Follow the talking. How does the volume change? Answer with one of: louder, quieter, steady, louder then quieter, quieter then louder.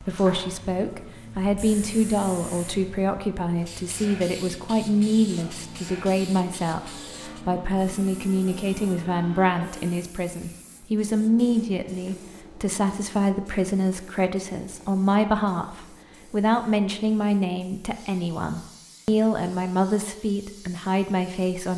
steady.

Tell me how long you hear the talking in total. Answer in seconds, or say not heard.
22 s.